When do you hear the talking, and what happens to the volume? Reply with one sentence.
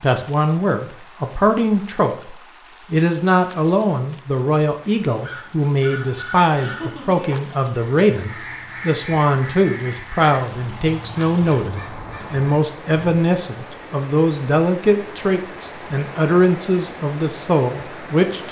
The talking can be heard from 0.0 to 18.4 s, at a steady volume.